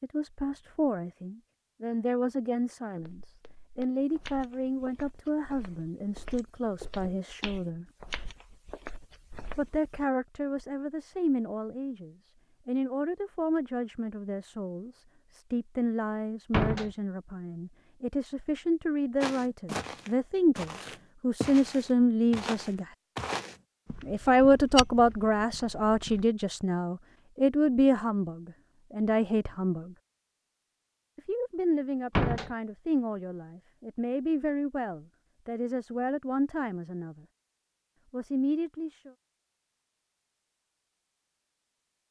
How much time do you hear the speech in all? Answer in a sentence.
The speech can be heard for 34 seconds in total.